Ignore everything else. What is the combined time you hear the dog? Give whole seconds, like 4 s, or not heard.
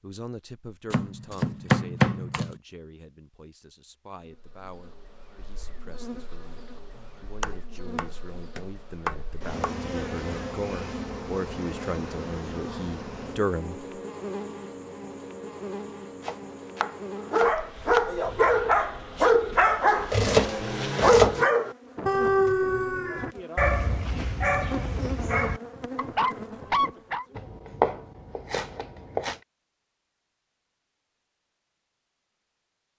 10 s.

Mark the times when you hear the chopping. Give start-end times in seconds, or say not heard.
0.9-2.6, 7.0-9.8, 16.2-18.1, 20.1-21.4, 27.4-29.4.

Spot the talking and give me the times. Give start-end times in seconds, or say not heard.
0.0-13.8.